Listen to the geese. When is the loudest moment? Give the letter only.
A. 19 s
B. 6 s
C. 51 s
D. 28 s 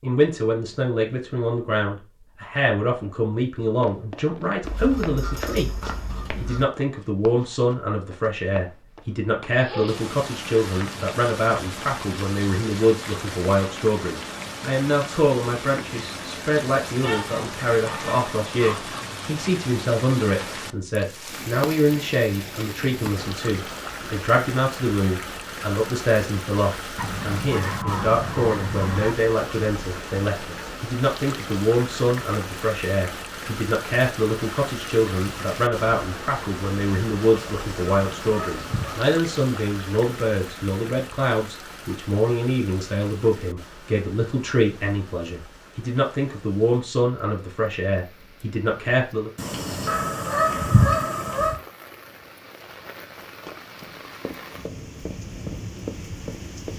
C.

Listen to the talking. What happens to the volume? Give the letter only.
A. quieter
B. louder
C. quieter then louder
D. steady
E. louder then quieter
D.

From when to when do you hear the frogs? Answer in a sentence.
The frogs can't be heard in this clip.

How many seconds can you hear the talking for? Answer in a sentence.
The talking can be heard for 49 seconds in total.